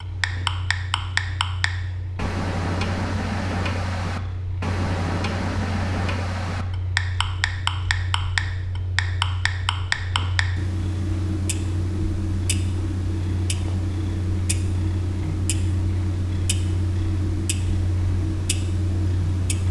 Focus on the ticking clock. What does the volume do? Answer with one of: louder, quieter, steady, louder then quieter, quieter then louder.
quieter.